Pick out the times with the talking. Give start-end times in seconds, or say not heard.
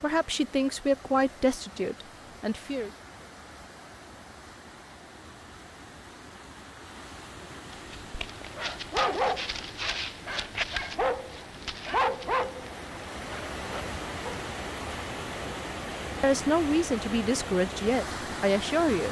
0.0-2.9, 16.2-19.0.